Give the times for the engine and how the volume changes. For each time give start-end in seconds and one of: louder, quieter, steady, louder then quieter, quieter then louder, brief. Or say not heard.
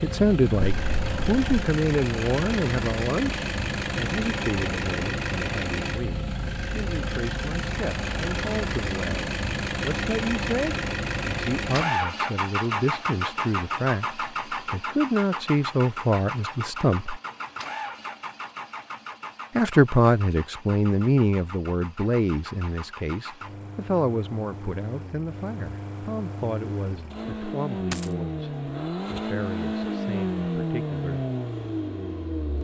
0.0-32.6 quieter then louder.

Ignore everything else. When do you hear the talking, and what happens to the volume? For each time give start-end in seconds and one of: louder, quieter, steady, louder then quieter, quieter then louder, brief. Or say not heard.
0.0-17.2 quieter then louder
19.6-31.2 quieter.